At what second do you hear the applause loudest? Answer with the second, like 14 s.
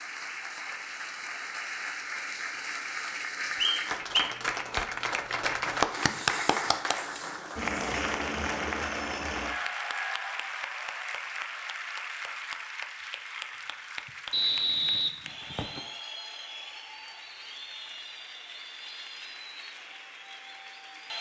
6 s.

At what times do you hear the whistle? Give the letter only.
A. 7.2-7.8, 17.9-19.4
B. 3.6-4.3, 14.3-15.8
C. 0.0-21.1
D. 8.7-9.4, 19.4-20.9
B.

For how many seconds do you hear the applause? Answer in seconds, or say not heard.
21 s.